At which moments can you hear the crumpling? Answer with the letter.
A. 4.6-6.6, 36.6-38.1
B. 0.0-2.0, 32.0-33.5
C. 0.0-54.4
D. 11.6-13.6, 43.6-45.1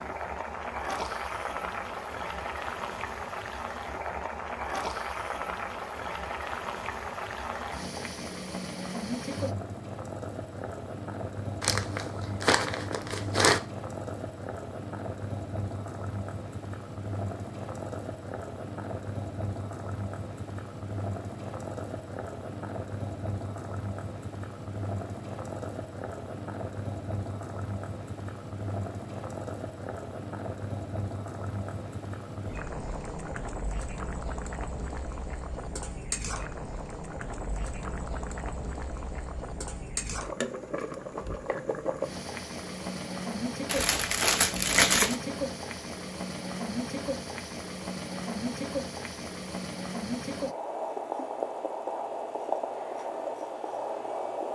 D.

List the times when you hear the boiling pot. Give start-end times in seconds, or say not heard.
0.0-54.4.